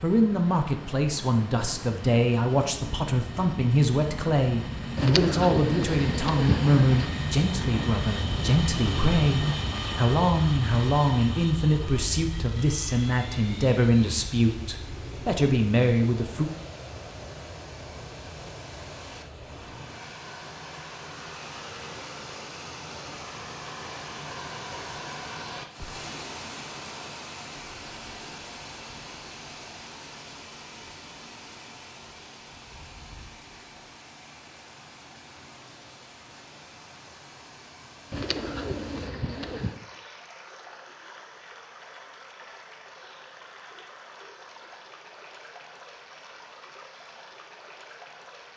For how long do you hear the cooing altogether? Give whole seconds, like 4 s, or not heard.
4 s.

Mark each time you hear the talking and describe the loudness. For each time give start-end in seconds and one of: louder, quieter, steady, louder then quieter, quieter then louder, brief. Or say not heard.
0.0-16.5 steady.